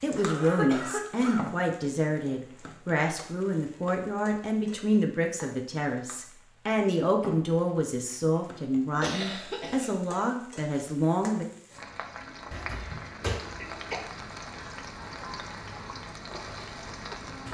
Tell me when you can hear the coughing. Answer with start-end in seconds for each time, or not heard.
0.1-1.4, 9.0-9.9, 12.5-14.0.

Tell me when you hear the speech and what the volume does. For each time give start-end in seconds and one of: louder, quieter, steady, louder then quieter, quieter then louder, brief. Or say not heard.
0.0-11.4 steady.